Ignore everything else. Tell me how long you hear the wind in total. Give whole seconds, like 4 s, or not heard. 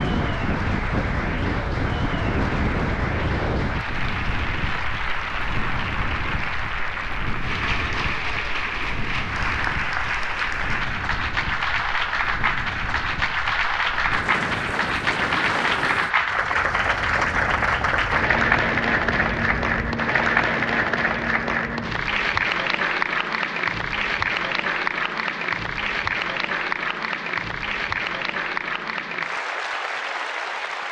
20 s.